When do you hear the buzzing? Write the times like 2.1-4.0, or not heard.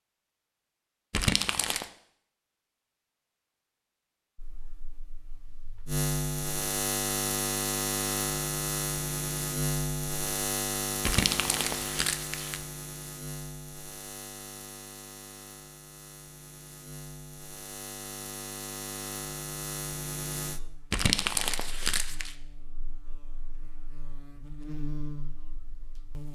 4.3-26.3.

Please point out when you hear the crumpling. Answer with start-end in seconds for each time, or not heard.
1.1-1.9, 11.1-12.6, 20.9-22.4.